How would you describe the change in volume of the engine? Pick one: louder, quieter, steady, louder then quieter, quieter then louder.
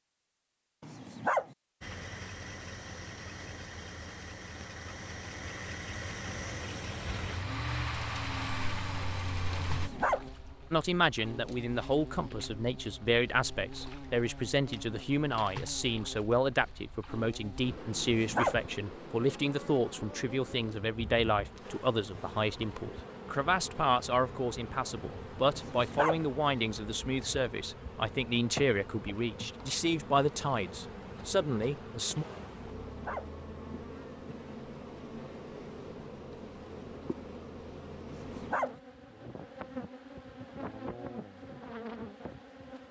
louder.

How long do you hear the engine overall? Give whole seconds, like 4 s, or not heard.
8 s.